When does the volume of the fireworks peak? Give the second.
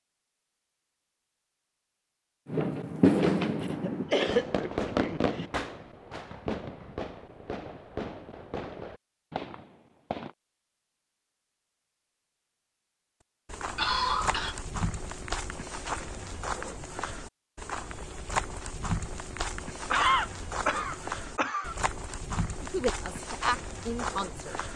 3 s.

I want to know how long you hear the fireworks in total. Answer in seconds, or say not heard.
8 s.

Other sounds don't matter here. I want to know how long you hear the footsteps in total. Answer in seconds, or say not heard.
11 s.